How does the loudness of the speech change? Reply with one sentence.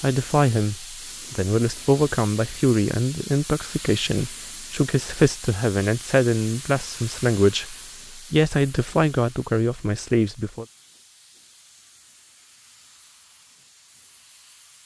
The loudness of the speech stays about the same.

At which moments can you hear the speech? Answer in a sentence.
The speech can be heard from 0.0 to 10.7 s.